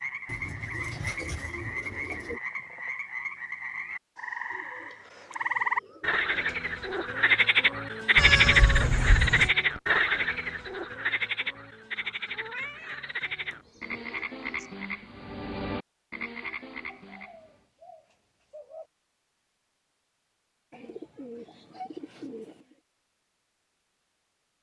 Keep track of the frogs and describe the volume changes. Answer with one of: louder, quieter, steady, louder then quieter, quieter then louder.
louder then quieter.